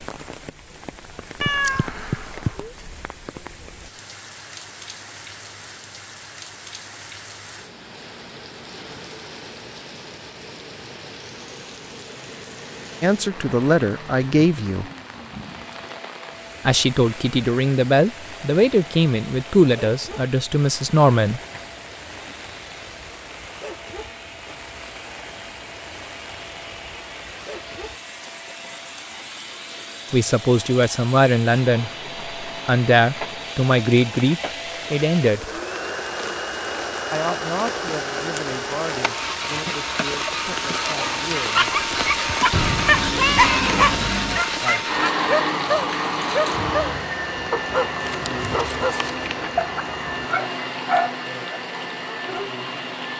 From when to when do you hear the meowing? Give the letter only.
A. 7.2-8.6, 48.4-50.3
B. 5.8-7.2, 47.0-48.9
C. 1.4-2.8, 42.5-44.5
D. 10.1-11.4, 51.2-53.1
C.